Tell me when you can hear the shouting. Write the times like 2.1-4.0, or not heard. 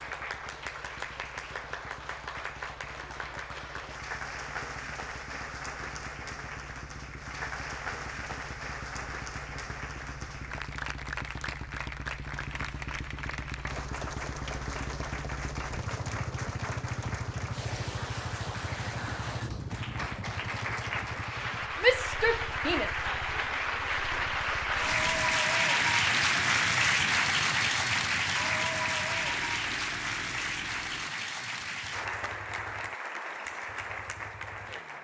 21.8-22.9.